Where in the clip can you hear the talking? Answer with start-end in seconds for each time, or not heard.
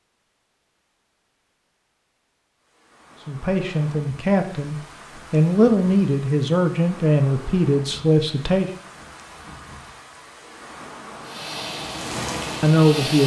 3.2-8.7, 12.6-13.2.